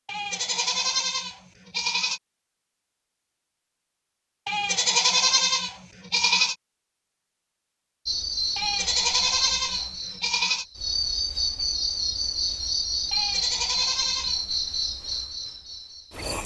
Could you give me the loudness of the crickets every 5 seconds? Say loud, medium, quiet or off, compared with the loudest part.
off, loud, loud, medium.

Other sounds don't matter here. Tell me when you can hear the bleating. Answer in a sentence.
You can hear the bleating from 0.1 to 2.2 s, from 4.5 to 6.5 s, from 8.6 to 10.7 s and from 13.1 to 14.4 s.